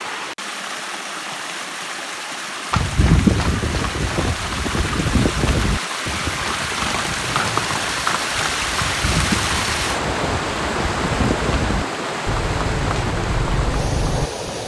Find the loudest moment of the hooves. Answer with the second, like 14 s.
3 s.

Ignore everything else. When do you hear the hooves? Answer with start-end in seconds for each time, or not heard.
2.7-14.3.